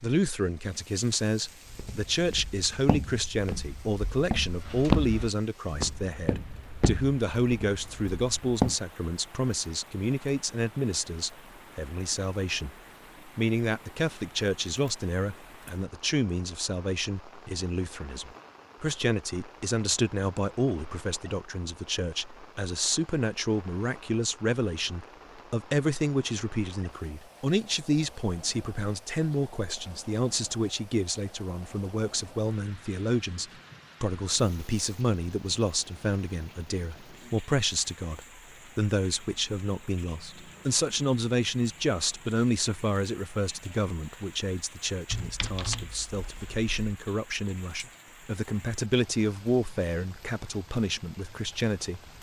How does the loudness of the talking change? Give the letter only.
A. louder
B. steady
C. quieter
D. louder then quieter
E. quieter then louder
B.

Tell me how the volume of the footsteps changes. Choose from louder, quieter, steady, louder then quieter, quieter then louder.
louder then quieter.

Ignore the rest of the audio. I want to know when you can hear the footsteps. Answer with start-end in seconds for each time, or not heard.
1.7-8.8.